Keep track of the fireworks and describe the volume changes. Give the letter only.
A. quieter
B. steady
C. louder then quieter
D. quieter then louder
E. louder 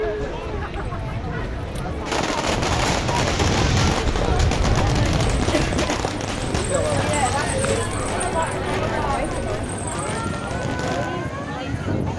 A.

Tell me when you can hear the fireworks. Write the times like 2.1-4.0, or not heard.
2.0-11.1.